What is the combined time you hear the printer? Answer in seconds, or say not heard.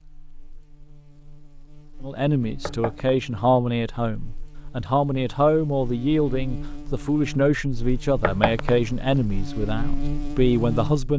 not heard.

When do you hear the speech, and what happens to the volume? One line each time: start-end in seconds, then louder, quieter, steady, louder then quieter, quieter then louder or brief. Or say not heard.
2.0-11.1 steady.